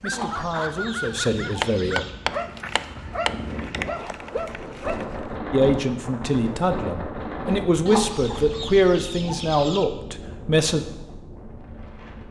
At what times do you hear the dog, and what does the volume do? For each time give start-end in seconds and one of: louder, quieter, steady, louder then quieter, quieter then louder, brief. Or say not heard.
0.0-5.3 steady.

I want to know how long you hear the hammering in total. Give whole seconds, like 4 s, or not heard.
2 s.